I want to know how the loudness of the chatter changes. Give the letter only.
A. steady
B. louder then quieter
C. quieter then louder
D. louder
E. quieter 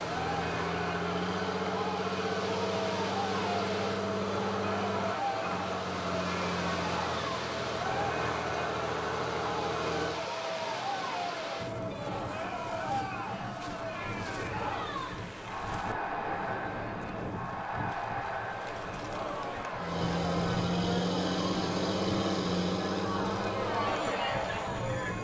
A.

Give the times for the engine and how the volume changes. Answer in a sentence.
You can hear the engine from 0.0 to 10.3 s, at a steady volume; and from 19.7 to 25.1 s, getting quieter.